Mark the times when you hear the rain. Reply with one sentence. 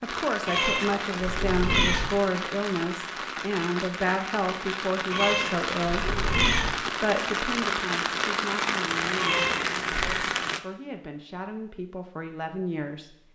You can hear the rain from 0.0 to 10.6 s.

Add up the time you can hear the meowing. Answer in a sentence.
The meowing can be heard for 4 seconds in total.